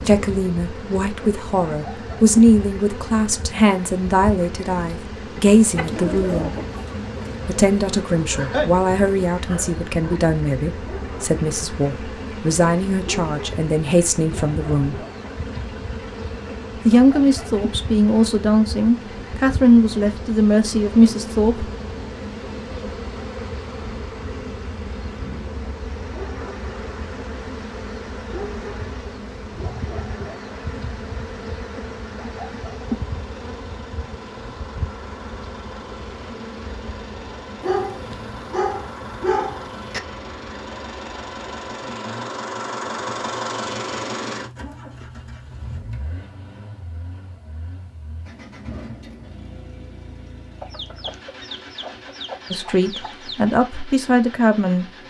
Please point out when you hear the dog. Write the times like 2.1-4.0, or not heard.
8.3-10.2, 37.6-40.0.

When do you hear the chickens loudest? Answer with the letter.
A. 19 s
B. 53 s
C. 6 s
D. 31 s
C.